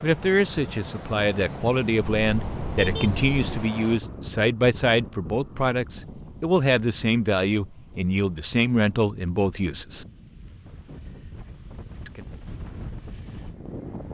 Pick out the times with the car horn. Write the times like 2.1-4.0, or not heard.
2.2-3.7.